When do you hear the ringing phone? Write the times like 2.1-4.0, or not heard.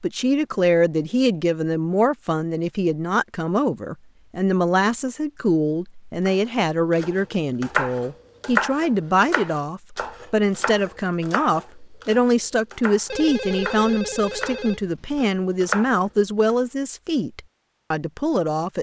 13.1-15.3.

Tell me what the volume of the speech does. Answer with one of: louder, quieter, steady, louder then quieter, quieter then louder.
steady.